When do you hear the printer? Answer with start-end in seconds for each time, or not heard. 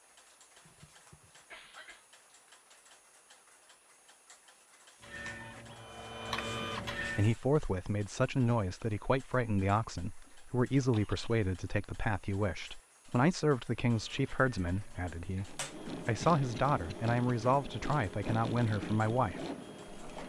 5.0-7.3, 13.8-20.2.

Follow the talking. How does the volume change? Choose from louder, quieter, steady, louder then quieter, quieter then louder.
steady.